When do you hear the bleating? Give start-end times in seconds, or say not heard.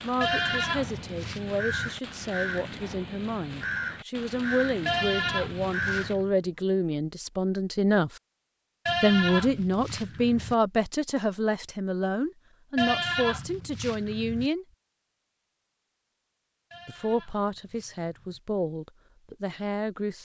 0.2-1.9, 4.8-6.3, 8.8-10.6, 12.8-14.5, 16.7-18.4.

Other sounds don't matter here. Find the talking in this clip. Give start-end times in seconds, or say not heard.
0.0-8.2, 9.0-14.7, 16.9-20.2.